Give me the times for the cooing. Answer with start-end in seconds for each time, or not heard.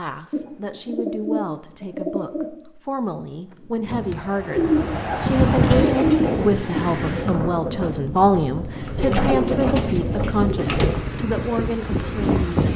0.3-2.5, 4.5-6.8, 9.0-10.9.